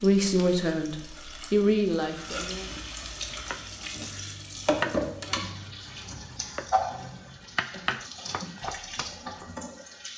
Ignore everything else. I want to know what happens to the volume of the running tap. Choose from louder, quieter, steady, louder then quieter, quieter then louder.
louder then quieter.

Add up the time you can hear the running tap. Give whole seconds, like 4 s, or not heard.
10 s.